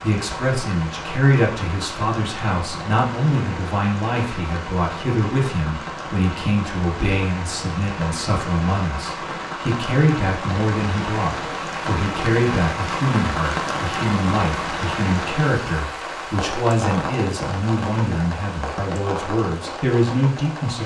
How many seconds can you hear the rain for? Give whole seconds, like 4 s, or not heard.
21 s.